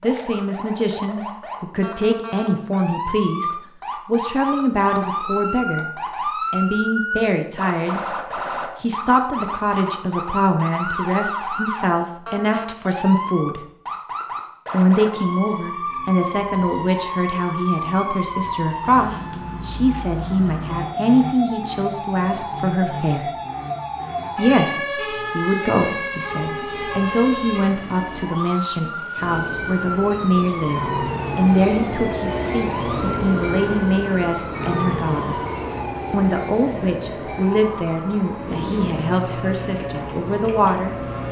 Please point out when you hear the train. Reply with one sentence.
The train can be heard from 29.1 to 41.2 s.